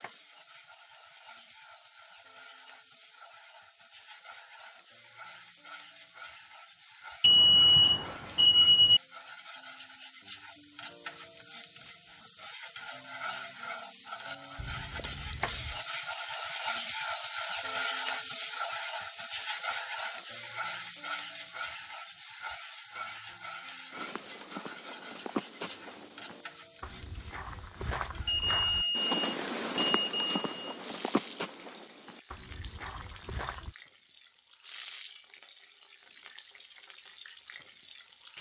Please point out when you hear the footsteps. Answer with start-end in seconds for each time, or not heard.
23.9-33.8.